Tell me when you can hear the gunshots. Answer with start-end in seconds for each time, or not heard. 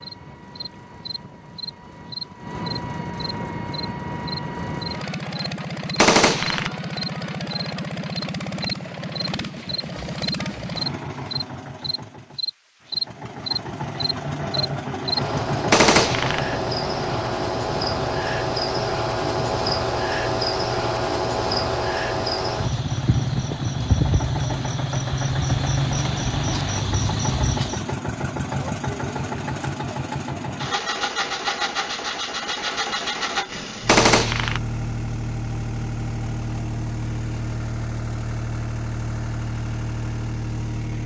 6.0-6.7, 15.7-16.4, 33.9-34.6.